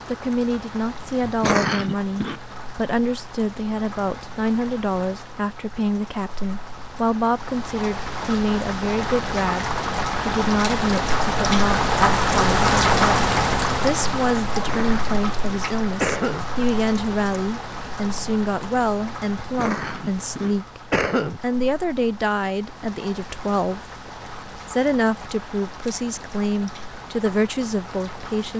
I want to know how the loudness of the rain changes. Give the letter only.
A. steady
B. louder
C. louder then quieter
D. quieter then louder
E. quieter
C.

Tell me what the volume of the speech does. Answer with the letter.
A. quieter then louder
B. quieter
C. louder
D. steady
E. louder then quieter
D.